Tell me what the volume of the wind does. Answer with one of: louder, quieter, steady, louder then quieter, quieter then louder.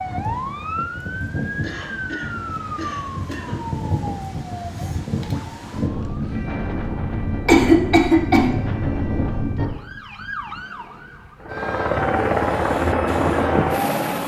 louder.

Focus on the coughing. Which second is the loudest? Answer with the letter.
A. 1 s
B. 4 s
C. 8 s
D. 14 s
C.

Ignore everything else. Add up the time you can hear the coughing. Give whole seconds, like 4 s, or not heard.
3 s.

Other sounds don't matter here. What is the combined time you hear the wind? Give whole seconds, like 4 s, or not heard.
10 s.